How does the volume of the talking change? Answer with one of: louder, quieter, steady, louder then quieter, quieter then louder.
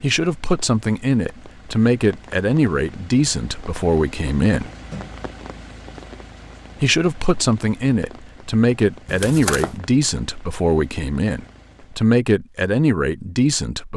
steady.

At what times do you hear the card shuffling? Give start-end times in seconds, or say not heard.
9.1-9.8.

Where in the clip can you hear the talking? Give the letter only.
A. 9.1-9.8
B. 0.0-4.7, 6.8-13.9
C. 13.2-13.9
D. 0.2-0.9
B.